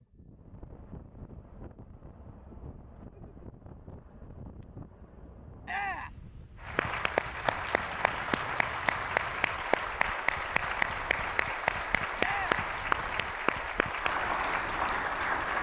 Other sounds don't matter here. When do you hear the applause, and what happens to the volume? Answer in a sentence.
The applause can be heard from 6.6 to 15.5 s, at a steady volume.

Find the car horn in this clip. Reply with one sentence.
The car horn can't be heard in this clip.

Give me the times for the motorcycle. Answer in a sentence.
You can't hear the motorcycle here.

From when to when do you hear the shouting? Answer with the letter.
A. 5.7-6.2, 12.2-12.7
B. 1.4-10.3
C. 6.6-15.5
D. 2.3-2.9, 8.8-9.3
A.